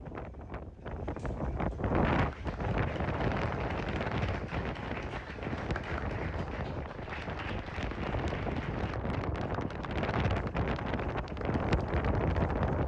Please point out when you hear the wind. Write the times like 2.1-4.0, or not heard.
0.0-12.8.